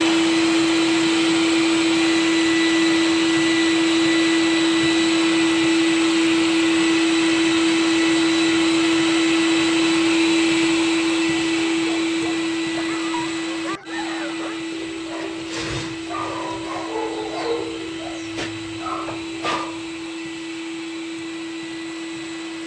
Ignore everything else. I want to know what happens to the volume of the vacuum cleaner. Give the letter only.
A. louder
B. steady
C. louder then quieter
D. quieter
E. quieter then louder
D.